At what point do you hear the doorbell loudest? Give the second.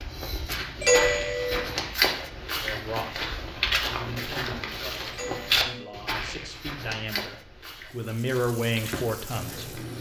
1 s.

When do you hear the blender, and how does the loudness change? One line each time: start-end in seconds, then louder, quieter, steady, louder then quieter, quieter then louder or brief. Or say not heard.
not heard.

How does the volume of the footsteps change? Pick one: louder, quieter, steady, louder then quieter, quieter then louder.
quieter.